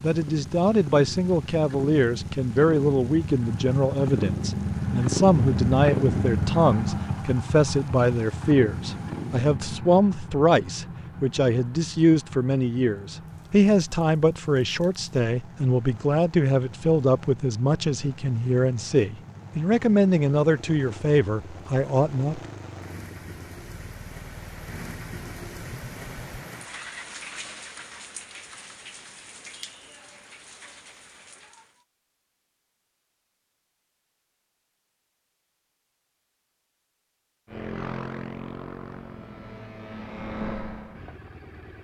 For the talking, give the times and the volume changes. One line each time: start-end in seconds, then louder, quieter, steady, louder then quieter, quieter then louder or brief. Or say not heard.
0.0-22.4 steady.